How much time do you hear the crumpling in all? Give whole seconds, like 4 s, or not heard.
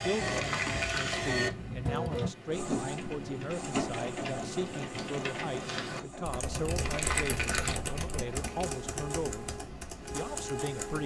3 s.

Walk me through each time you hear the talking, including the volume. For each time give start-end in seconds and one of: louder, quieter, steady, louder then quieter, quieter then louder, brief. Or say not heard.
0.0-9.4 steady
10.1-11.0 brief.